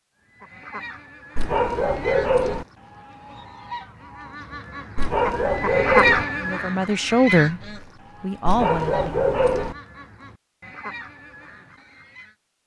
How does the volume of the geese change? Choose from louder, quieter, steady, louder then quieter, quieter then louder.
louder then quieter.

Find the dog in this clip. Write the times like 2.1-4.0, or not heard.
1.4-2.6, 5.0-6.2, 8.4-9.8.